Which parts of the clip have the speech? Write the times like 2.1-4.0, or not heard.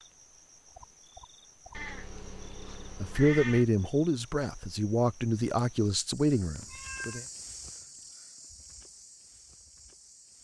3.0-7.2.